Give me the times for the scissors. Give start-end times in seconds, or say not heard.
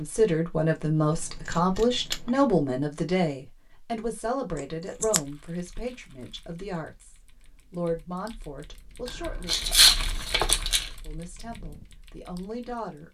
1.1-2.5, 4.5-5.2, 9.1-10.9.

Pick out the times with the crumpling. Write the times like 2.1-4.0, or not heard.
9.4-10.9.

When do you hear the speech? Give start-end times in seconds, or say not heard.
0.0-9.6, 11.1-13.1.